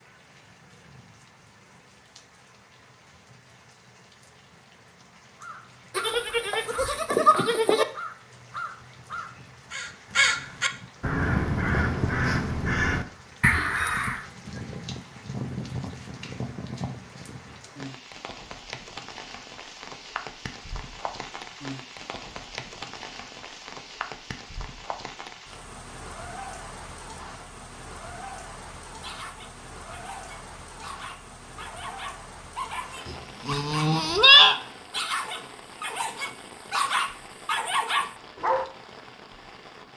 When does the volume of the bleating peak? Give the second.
34 s.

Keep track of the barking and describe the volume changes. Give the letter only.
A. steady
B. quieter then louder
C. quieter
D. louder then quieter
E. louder
E.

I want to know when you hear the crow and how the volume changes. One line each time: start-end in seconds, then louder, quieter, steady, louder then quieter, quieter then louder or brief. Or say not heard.
5.4-14.2 louder.